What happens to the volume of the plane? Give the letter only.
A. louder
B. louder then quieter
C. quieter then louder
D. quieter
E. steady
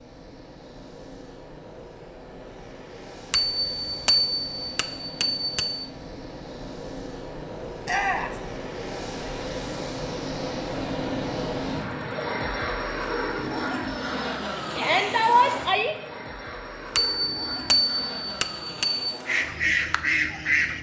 B.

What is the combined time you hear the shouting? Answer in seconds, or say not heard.
2 s.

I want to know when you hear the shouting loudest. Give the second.
15 s.